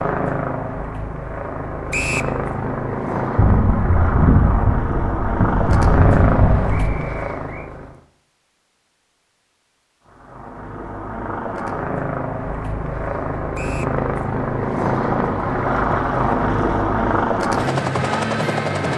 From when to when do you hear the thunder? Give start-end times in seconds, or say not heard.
3.4-6.8.